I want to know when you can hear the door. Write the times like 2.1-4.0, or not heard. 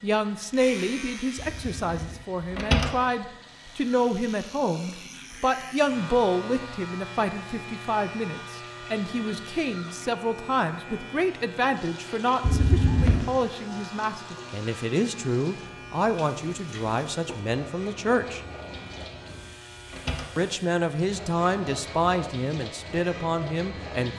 1.4-2.9, 12.4-13.2, 19.0-20.4.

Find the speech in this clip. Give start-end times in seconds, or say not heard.
0.0-18.4, 20.4-24.1.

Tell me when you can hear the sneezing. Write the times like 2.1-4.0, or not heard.
not heard.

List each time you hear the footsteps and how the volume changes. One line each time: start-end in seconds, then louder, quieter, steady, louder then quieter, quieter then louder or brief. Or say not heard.
not heard.